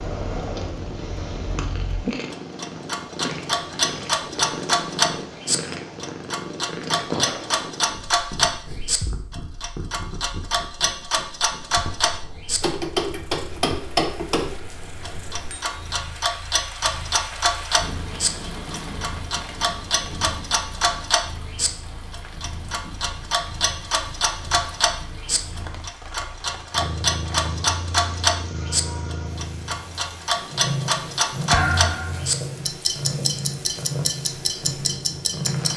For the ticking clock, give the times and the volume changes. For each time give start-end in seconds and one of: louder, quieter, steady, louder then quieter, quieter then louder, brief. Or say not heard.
0.0-35.7 steady.